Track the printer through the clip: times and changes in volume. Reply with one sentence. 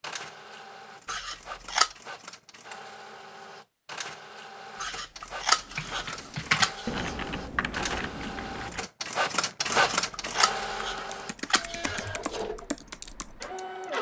The printer can be heard from 0.0 to 13.9 s, getting louder then quieter.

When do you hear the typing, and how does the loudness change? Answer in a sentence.
You can hear the typing from 5.6 to 13.9 s, getting quieter then louder.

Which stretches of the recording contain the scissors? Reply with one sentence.
You can hear the scissors from 1.1 to 1.9 s, from 4.8 to 7.2 s and from 9.7 to 12.1 s.